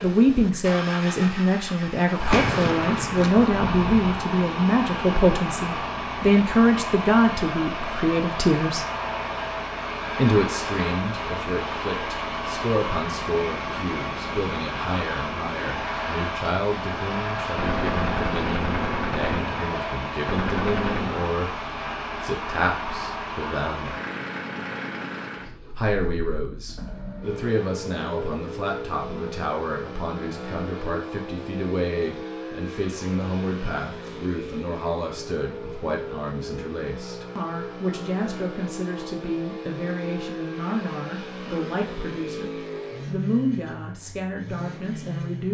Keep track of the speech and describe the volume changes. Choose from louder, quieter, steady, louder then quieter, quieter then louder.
quieter.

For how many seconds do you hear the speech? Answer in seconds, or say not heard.
42 s.